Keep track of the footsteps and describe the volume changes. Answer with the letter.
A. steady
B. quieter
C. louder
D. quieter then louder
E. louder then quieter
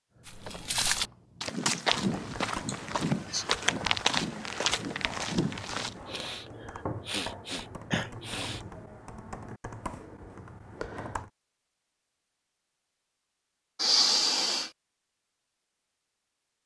A.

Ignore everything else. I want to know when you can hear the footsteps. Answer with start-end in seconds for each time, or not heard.
0.2-6.0.